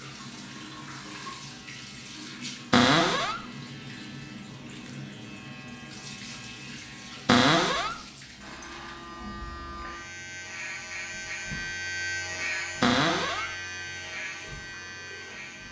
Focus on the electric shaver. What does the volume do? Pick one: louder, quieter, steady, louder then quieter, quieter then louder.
louder.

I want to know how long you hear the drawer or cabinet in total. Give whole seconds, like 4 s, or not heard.
2 s.